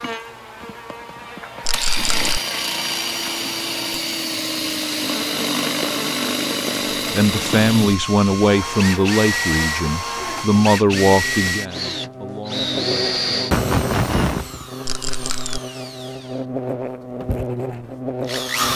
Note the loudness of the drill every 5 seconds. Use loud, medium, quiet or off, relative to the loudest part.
loud, loud, loud, medium.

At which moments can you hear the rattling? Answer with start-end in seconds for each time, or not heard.
1.6-2.4, 14.8-15.6.